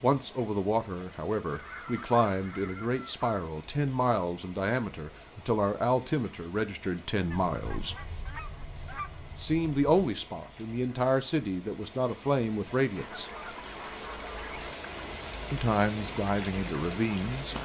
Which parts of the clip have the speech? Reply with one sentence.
You can hear the speech from 0.0 to 8.0 s, from 9.3 to 13.3 s and from 15.5 to 17.6 s.